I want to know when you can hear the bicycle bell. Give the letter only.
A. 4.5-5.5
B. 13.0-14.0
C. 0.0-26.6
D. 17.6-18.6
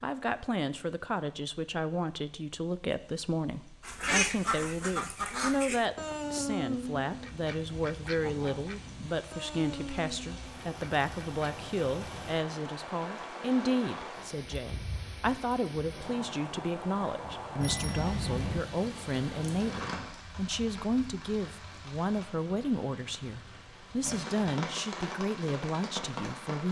D.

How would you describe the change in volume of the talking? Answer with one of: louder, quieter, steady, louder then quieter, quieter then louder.
steady.